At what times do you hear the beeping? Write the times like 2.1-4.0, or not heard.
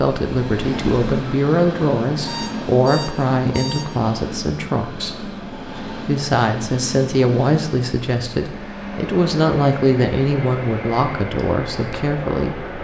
2.2-4.0.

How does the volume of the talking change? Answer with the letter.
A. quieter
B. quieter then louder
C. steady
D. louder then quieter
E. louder
C.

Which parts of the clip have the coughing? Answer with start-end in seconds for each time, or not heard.
not heard.